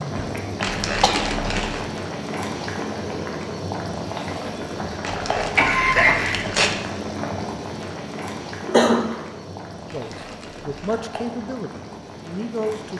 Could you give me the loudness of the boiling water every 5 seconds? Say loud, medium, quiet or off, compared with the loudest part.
loud, loud, medium.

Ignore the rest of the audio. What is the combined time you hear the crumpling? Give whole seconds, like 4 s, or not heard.
4 s.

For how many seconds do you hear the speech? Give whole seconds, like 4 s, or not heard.
3 s.